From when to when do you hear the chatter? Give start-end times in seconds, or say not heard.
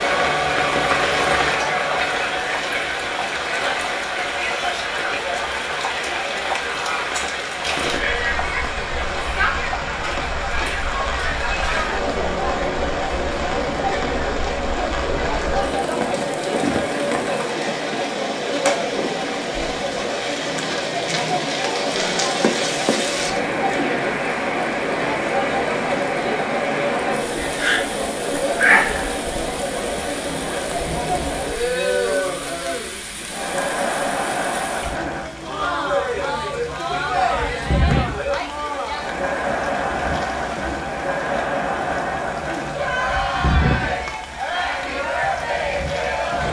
0.0-46.4.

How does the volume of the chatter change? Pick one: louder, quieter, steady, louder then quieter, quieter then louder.
steady.